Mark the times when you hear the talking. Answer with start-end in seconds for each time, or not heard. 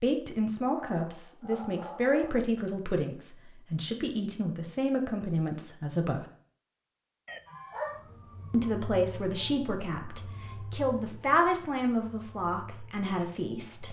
0.0-6.2, 8.5-13.8.